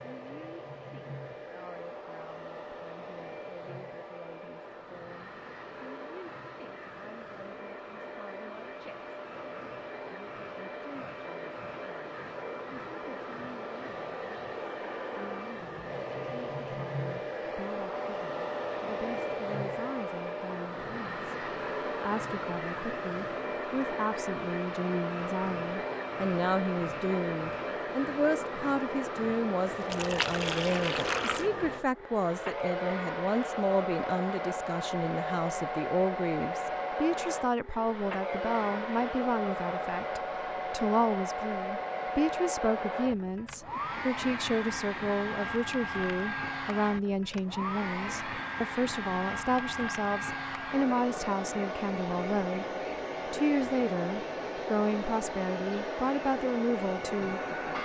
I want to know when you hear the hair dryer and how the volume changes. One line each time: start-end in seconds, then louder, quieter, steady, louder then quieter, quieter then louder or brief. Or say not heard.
0.0-57.7 louder.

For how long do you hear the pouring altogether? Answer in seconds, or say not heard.
2 s.